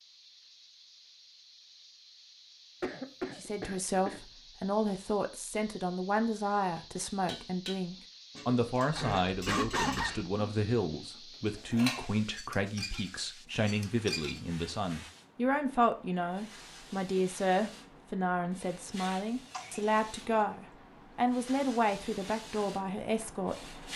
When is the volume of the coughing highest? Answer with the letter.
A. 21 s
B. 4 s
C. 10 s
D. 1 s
C.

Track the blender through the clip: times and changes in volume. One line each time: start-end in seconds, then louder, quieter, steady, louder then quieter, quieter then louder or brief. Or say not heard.
not heard.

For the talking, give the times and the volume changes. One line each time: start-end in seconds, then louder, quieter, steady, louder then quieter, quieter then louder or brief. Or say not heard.
3.4-23.8 steady.